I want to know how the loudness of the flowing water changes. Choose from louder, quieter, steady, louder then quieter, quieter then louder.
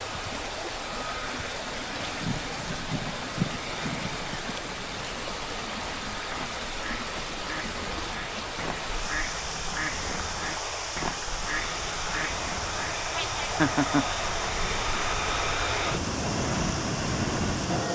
steady.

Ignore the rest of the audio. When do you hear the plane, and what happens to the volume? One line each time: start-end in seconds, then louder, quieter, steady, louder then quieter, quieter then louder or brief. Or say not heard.
0.0-17.8 louder.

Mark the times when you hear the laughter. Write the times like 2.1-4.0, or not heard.
13.6-14.1.